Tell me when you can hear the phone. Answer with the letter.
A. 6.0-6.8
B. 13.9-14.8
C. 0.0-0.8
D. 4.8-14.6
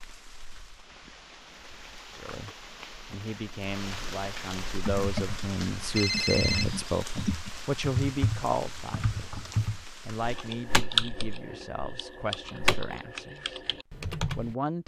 A.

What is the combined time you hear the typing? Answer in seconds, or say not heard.
10 s.